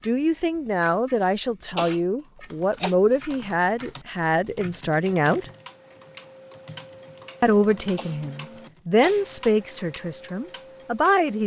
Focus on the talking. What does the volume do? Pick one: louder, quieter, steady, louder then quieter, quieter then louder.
steady.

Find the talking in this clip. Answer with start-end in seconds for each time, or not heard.
0.0-5.5, 7.4-11.4.